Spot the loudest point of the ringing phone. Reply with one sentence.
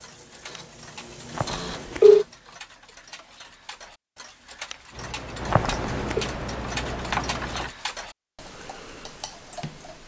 The loudest moment of the ringing phone is at 2 seconds.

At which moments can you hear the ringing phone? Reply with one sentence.
The ringing phone can be heard from 1.4 to 2.2 s and from 5.5 to 6.2 s.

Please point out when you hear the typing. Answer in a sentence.
The typing can be heard from 4.9 to 7.7 s.